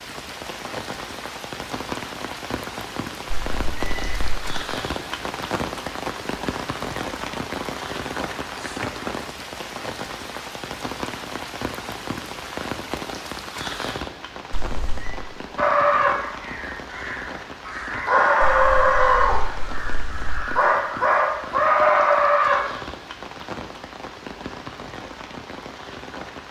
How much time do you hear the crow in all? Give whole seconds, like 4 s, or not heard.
7 s.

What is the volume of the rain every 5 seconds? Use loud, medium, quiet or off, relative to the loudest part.
loud, loud, loud, medium, medium, medium.